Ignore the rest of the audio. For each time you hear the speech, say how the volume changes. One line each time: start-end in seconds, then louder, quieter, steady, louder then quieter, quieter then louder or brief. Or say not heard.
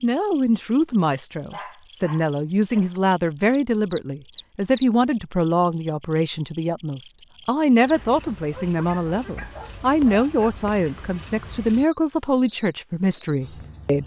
0.0-14.0 steady.